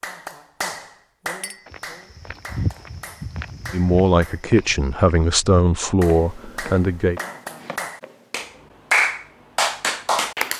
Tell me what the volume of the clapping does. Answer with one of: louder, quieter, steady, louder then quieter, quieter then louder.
quieter then louder.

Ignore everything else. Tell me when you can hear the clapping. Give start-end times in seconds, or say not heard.
0.0-4.5, 6.0-10.5.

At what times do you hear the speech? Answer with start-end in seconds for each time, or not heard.
3.7-7.2.